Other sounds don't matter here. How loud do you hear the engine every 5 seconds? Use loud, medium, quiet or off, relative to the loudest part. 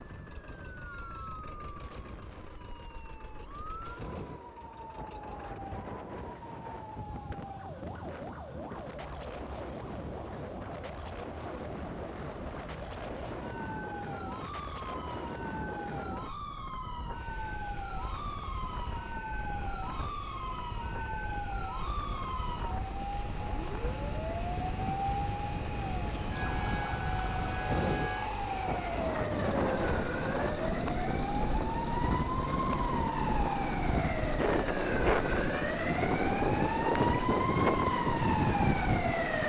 quiet, quiet, quiet, quiet, medium, loud, loud, loud.